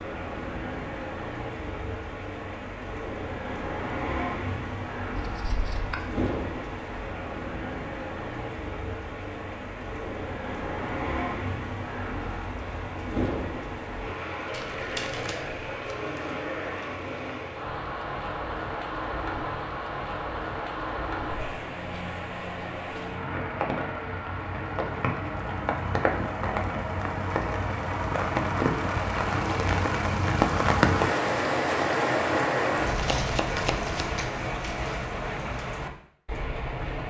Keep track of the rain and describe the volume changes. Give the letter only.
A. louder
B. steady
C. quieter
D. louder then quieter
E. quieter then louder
A.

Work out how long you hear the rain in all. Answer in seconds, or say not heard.
37 s.